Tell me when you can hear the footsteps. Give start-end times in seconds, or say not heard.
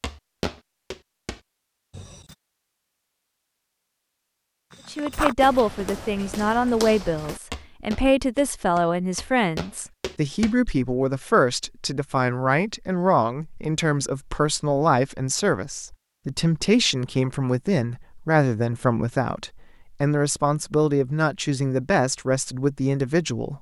0.0-2.4, 4.7-10.6.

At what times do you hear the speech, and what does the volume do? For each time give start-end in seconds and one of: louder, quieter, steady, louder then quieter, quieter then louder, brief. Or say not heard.
4.8-23.5 steady.